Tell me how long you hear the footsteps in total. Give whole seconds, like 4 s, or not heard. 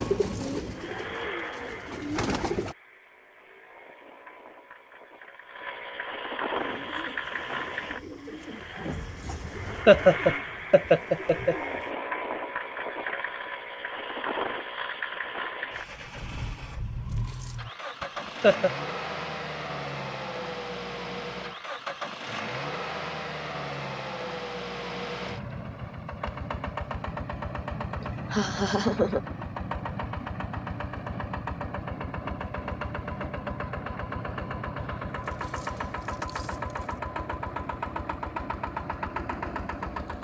not heard.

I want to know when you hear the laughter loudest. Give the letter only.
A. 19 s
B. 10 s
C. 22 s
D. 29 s
B.